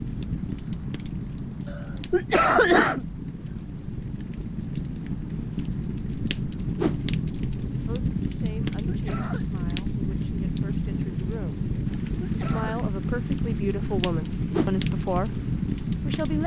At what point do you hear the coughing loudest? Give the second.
3 s.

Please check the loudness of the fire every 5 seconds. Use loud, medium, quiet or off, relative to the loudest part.
medium, loud, loud, loud.